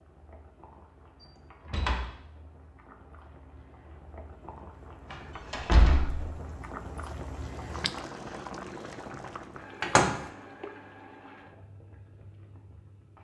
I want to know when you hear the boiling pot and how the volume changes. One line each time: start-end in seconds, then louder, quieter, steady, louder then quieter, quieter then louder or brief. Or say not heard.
0.0-13.1 louder then quieter.